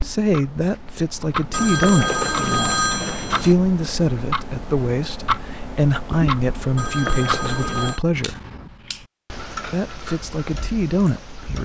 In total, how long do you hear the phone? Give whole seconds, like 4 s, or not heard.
3 s.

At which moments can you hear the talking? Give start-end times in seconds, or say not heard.
0.0-8.4, 9.7-11.6.